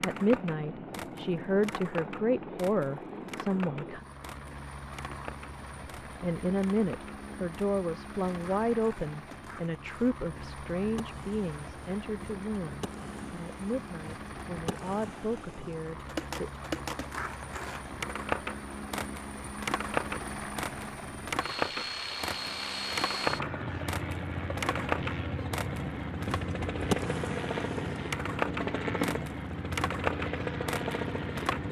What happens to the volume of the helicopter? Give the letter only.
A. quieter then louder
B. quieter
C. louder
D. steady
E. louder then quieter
C.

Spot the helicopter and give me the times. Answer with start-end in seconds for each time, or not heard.
0.0-31.6.